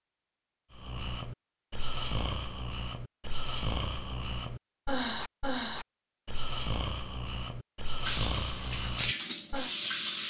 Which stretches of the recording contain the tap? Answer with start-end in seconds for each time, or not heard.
8.0-10.2.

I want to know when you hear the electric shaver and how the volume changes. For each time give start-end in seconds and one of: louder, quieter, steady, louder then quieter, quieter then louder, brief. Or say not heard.
not heard.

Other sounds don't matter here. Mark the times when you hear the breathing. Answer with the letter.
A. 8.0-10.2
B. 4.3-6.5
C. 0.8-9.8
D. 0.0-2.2
C.